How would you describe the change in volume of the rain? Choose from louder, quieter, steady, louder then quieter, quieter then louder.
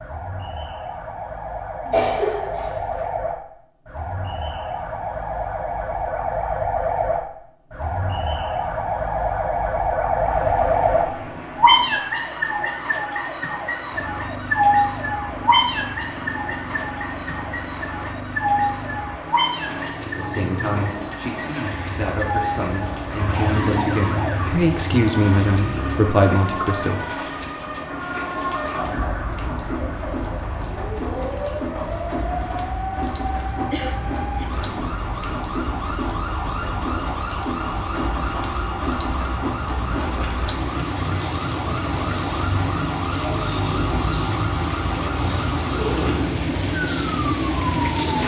louder.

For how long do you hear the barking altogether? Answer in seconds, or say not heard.
not heard.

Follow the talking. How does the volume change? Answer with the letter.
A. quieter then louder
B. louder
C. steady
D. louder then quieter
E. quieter
B.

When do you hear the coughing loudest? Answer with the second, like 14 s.
2 s.